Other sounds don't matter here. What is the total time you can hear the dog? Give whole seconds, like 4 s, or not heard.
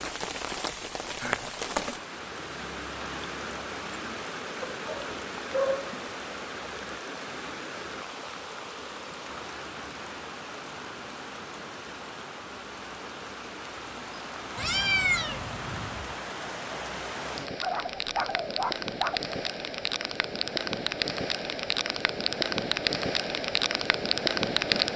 3 s.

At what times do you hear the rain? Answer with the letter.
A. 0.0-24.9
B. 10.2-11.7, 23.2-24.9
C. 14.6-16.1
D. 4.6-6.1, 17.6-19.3
A.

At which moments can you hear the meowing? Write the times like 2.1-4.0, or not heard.
14.6-16.1.